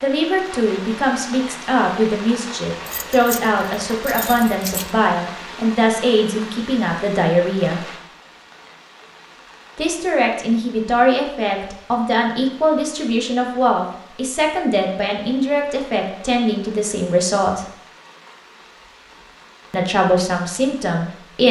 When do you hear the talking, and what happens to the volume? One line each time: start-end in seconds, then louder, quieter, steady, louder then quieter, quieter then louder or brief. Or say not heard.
0.0-7.8 steady
9.8-17.6 steady
19.7-21.4 brief.